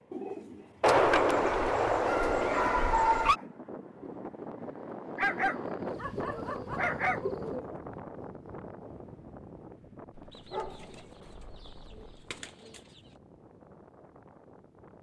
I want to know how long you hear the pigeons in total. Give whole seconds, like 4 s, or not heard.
7 s.